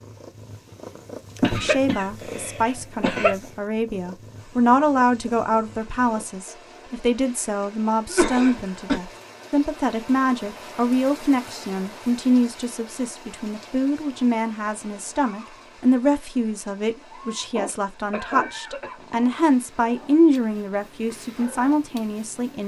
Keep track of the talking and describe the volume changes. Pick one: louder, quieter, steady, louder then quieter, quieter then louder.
steady.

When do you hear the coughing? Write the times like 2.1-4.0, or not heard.
1.4-3.4, 8.1-9.0, 17.6-19.1.